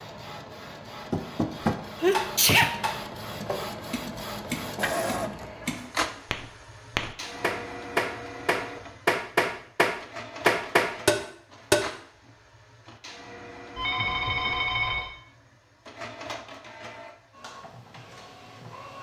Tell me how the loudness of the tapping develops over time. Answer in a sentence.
The volume of the tapping goes down, then up.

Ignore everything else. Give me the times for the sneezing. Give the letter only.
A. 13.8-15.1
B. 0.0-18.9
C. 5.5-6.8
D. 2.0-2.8
D.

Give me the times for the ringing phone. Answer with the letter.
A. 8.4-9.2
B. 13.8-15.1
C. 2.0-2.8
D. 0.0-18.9
B.